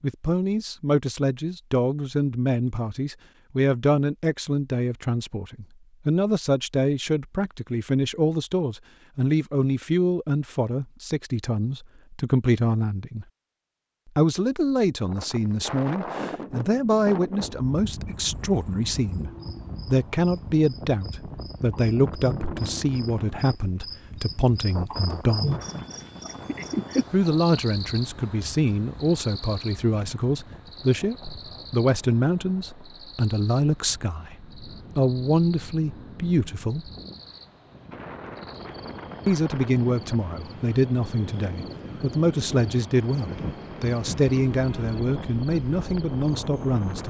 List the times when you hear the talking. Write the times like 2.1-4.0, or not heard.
0.0-13.2, 14.2-25.5, 27.1-36.9, 39.2-47.0.